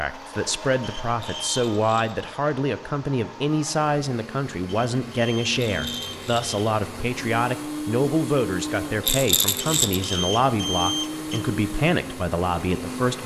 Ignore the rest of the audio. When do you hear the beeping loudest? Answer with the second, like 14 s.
11 s.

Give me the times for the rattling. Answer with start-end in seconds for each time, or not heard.
1.1-2.2, 5.5-6.5, 9.0-10.2.